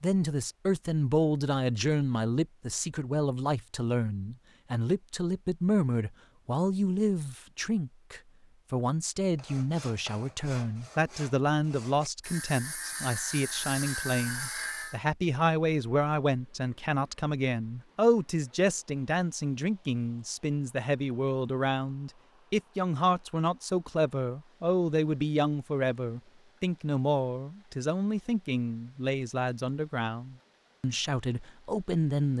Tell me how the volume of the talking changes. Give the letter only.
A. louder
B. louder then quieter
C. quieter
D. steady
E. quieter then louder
D.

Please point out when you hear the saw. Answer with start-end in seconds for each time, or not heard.
9.3-15.0.